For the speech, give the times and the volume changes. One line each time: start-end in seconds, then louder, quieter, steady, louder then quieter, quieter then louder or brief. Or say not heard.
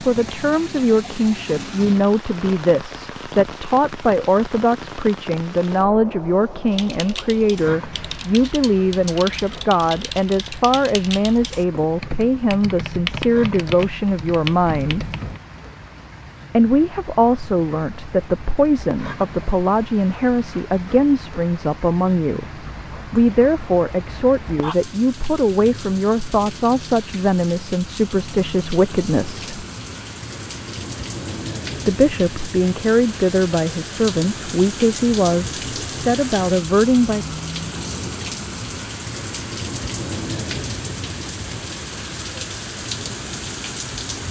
0.0-15.1 steady
16.5-29.4 steady
31.9-37.4 steady.